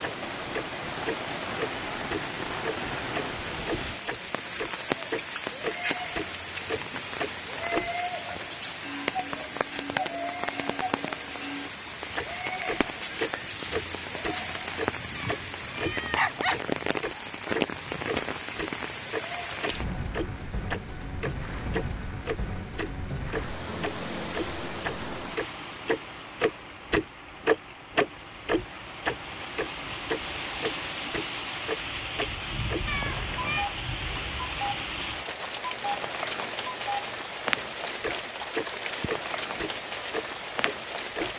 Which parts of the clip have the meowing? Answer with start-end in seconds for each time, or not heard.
15.2-16.8, 32.9-33.7.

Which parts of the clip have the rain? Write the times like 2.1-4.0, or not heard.
0.0-41.3.